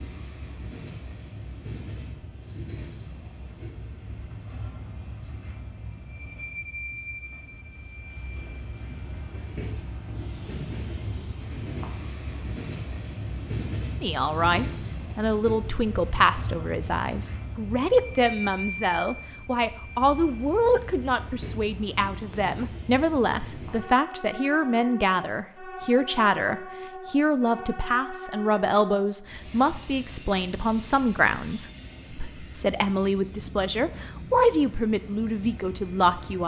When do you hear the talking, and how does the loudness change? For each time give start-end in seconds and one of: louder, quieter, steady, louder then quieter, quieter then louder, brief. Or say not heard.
14.0-36.4 steady.